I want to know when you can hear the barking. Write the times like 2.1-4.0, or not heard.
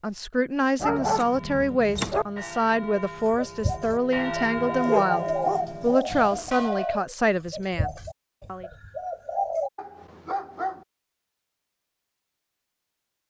0.8-2.2, 4.8-6.5, 9.8-10.8.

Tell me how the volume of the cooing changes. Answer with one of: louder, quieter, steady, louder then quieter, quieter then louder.
louder then quieter.